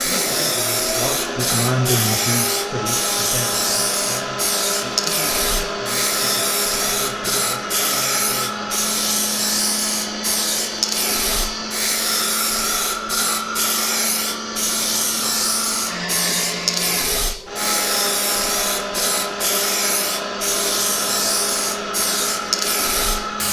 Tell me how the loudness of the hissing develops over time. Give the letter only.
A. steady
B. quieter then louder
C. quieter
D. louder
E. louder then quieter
A.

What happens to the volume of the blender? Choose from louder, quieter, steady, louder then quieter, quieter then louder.
steady.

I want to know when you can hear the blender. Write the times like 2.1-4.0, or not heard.
0.0-23.4.